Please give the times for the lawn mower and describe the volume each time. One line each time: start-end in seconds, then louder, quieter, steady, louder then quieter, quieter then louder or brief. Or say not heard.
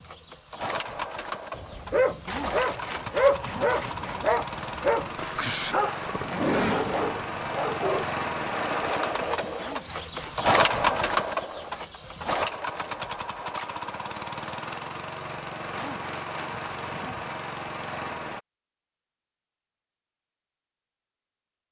0.0-18.4 louder then quieter.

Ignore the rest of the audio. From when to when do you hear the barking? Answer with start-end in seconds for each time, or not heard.
1.6-8.1.